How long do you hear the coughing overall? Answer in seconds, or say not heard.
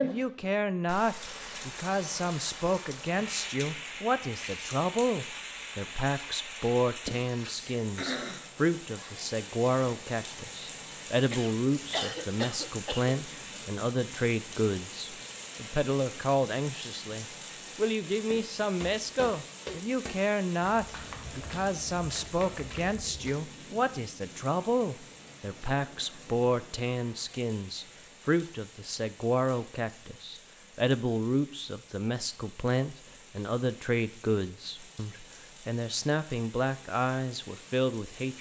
2 s.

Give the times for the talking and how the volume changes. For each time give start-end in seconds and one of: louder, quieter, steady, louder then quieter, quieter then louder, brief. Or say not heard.
0.0-38.3 steady.